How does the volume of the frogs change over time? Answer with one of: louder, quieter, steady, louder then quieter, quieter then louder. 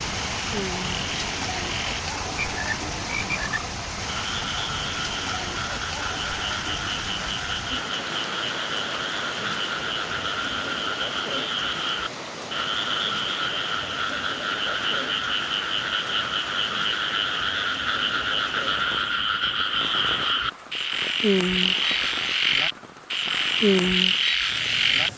louder.